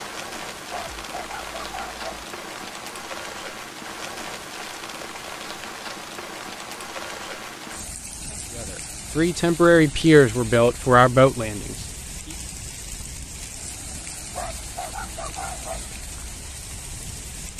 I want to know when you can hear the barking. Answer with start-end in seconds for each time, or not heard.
0.7-2.2, 14.3-15.9.